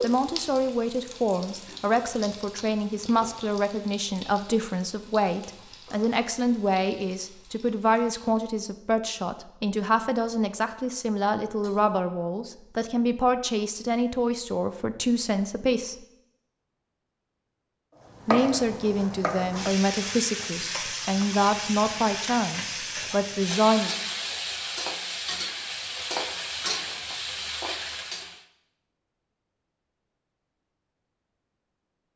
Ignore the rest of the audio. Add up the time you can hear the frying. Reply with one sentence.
The frying can be heard for 19 seconds in total.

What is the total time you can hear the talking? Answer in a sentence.
You can hear the talking for 22 seconds altogether.